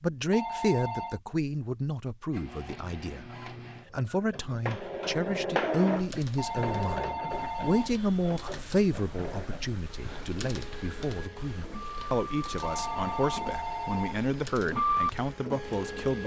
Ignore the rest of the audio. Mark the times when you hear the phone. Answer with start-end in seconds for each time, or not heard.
0.3-1.2, 6.3-8.0, 12.6-14.2.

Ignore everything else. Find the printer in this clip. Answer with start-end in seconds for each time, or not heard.
2.3-16.2.